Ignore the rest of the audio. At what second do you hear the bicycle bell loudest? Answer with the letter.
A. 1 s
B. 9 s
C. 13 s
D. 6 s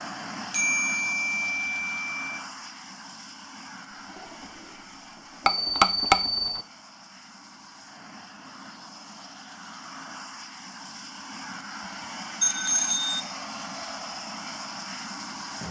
D.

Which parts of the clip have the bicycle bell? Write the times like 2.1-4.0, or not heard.
0.5-2.4, 5.5-6.7, 12.4-13.2.